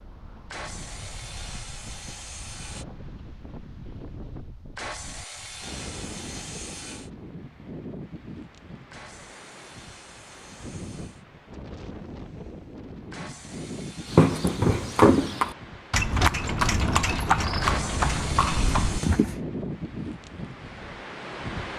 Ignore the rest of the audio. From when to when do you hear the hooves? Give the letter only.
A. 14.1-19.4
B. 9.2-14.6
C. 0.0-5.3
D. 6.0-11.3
A.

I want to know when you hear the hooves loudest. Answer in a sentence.
The volume of the hooves peaks at 15 seconds.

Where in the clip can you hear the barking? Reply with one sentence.
The barking can't be heard in this clip.